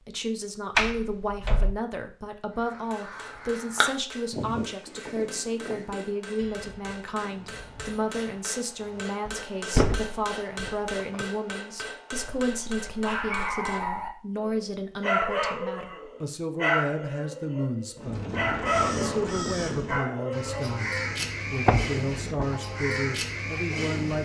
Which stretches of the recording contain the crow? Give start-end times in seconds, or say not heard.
2.6-9.2, 17.9-24.2.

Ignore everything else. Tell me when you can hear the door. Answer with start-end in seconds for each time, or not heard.
0.8-1.8, 9.2-11.2, 21.2-22.6.